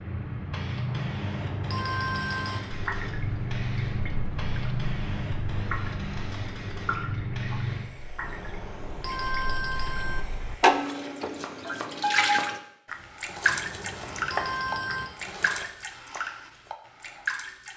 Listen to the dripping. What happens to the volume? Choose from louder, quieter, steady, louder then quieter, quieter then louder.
louder then quieter.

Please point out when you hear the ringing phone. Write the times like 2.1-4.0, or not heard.
0.8-2.6, 8.2-10.2, 13.4-15.1.